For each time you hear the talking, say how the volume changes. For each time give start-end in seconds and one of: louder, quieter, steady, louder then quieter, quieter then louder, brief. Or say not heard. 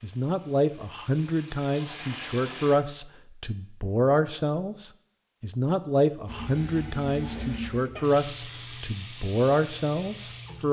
0.0-10.6 steady.